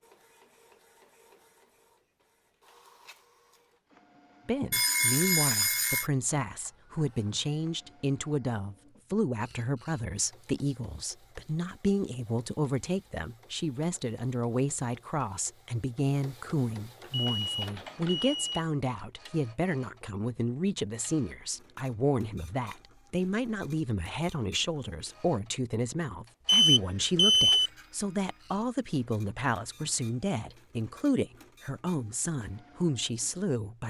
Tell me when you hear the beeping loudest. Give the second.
27 s.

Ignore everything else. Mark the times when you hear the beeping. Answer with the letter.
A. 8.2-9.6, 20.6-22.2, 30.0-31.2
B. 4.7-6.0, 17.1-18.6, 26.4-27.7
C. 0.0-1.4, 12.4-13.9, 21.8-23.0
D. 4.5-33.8
B.